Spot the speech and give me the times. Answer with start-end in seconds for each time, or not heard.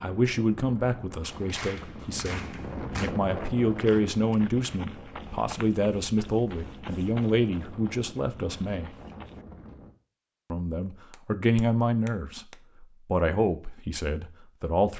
0.0-8.9, 10.5-14.9.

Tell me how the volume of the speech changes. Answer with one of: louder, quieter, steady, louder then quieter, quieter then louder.
steady.